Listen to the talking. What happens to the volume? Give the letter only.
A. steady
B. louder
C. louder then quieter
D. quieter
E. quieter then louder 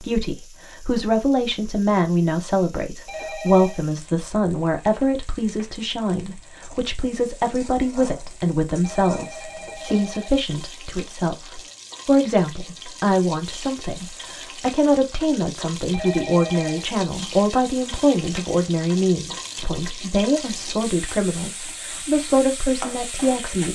A.